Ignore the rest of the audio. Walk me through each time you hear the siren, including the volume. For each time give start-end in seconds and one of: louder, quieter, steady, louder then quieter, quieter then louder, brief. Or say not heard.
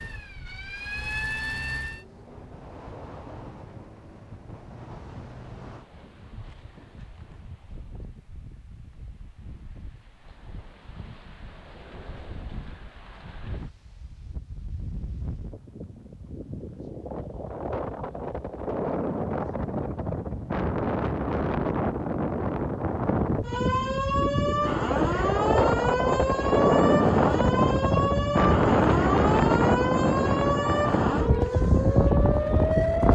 0.0-2.0 brief
23.4-33.0 steady.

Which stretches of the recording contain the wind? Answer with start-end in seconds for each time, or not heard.
0.0-33.0.